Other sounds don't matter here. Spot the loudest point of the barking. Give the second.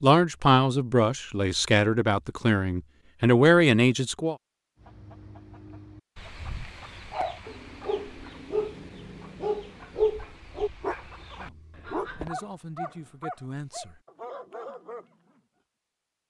10 s.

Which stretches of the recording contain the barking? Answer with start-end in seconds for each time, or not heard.
7.1-15.4.